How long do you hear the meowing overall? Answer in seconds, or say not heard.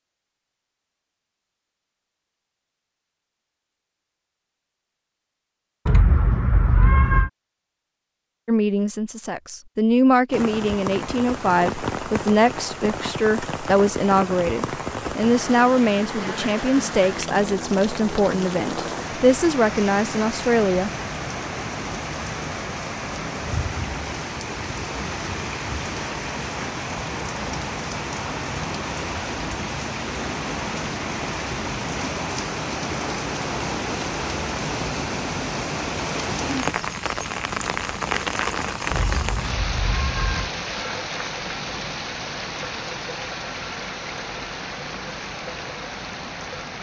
3 s.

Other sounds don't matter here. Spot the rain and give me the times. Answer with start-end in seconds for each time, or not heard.
10.3-46.7.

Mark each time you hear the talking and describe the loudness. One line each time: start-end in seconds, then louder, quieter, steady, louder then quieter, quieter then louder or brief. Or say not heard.
8.4-20.9 steady.